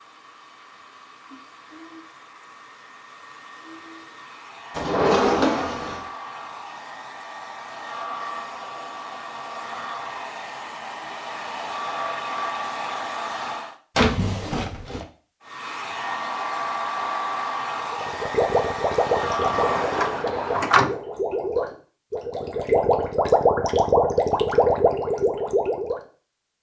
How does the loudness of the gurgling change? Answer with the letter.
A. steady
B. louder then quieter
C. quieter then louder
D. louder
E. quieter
C.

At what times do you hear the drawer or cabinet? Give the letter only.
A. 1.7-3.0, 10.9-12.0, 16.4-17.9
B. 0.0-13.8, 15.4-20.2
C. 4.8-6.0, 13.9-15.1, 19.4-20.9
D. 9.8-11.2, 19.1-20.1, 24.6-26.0
C.